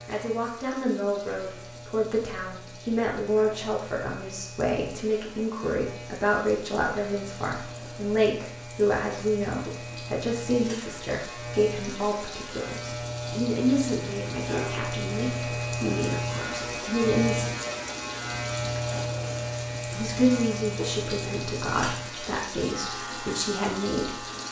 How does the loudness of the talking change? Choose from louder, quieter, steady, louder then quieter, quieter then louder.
steady.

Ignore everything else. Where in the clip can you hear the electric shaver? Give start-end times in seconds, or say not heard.
0.0-24.4.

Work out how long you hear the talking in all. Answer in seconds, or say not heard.
22 s.